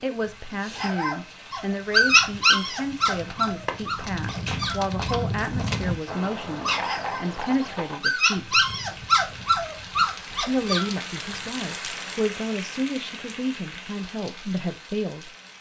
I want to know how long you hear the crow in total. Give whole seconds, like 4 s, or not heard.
not heard.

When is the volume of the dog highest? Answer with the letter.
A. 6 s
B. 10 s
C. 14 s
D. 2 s
D.